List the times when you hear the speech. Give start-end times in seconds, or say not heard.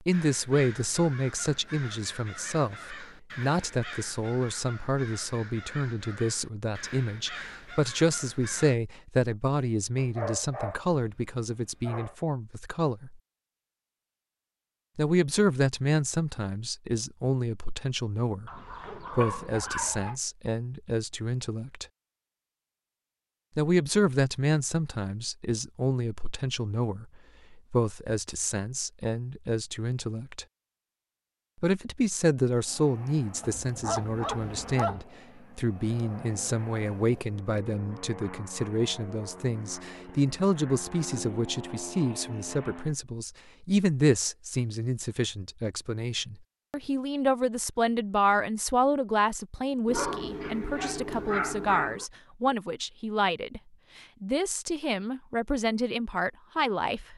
0.1-13.2, 14.9-21.9, 23.6-30.4, 31.6-53.6, 54.2-57.1.